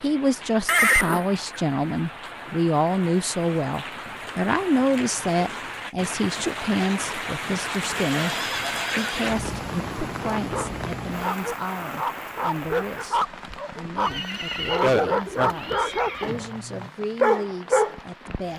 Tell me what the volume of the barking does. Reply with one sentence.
The loudness of the barking goes up.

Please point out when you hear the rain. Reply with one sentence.
You can hear the rain from 0.0 to 18.5 s.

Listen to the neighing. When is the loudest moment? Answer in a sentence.
The loudest moment of the neighing is at 1 second.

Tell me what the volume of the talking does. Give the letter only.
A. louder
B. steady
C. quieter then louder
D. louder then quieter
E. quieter
E.